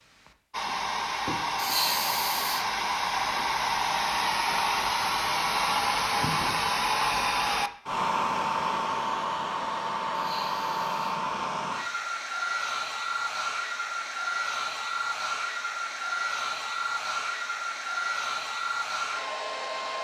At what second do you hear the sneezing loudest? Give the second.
2 s.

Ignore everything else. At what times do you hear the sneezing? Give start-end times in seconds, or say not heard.
1.6-2.6, 10.1-11.2.